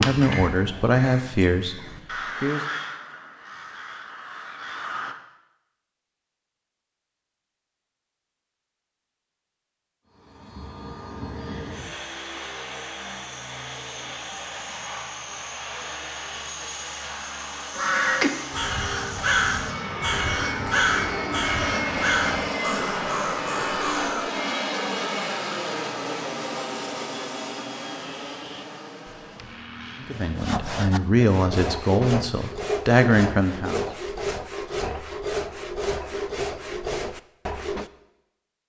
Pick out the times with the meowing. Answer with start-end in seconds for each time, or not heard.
not heard.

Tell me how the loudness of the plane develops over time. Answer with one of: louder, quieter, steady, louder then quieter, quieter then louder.
louder then quieter.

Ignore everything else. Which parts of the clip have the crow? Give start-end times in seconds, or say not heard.
0.0-5.2, 17.7-24.3.